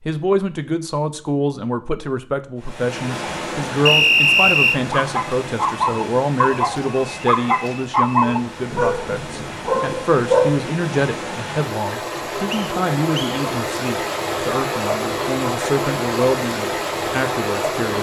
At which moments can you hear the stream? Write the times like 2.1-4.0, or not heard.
2.5-17.9.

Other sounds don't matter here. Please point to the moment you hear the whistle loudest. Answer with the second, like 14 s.
4 s.